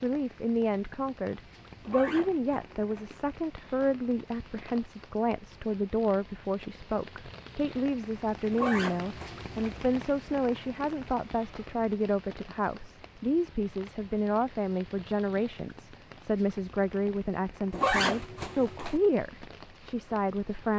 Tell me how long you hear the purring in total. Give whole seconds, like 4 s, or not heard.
not heard.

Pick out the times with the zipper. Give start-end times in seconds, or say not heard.
1.9-3.1, 8.5-9.8, 17.7-19.0.